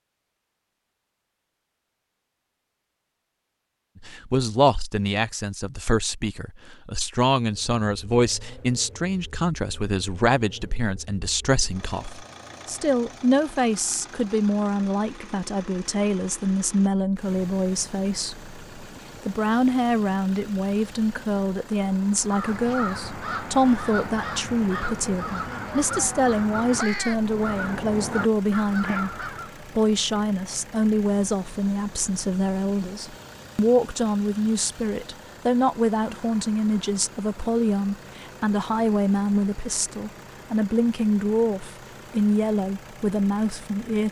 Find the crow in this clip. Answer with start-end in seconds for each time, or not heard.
22.2-29.6.